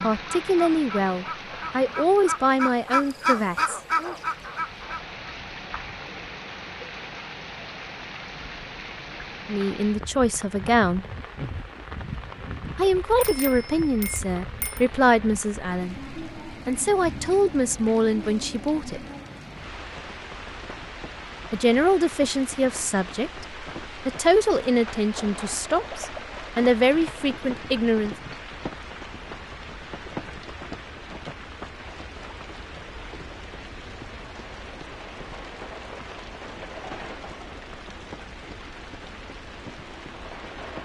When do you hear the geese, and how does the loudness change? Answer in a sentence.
You can hear the geese from 0.0 to 5.2 s, getting louder.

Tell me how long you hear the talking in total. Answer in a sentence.
You can hear the talking for 18 seconds altogether.